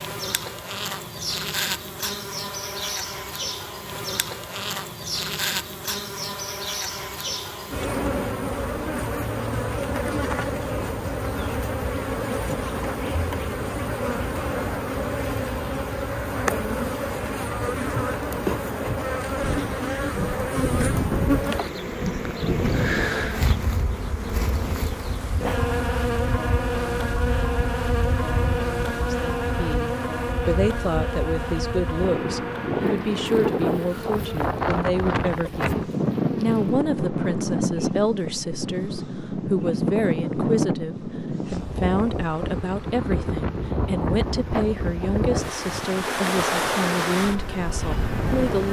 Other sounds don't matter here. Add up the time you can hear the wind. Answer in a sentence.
You can hear the wind for 29 seconds altogether.